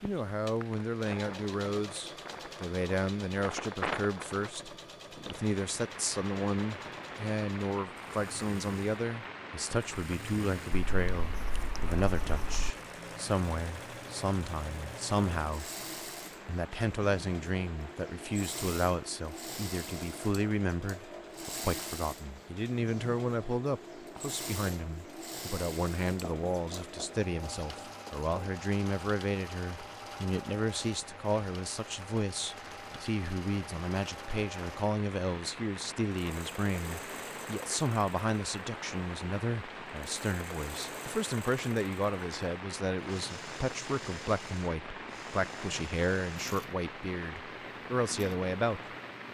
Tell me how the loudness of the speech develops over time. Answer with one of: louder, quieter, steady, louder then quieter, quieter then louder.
steady.